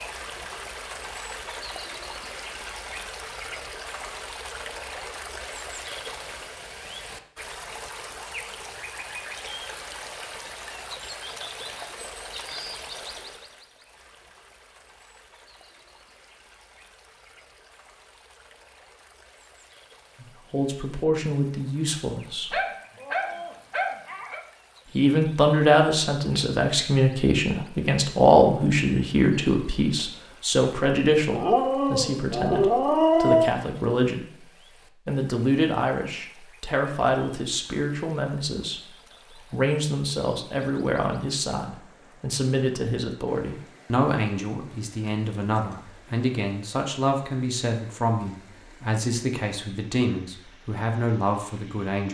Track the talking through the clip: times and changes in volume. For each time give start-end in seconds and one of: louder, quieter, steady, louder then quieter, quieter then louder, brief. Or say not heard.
20.2-22.6 brief
24.9-52.0 quieter.